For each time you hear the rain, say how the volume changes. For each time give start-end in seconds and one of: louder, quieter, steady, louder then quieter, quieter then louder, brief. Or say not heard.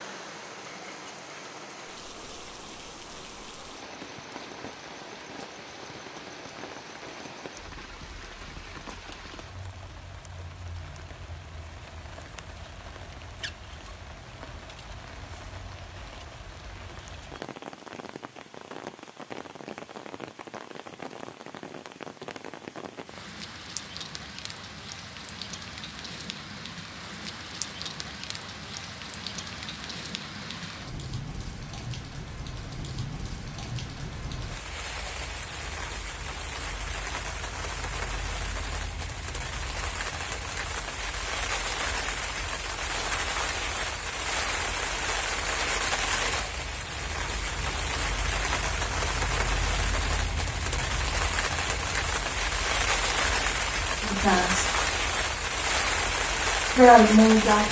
0.0-57.6 louder.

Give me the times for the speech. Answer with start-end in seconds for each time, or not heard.
54.0-54.7, 56.8-57.6.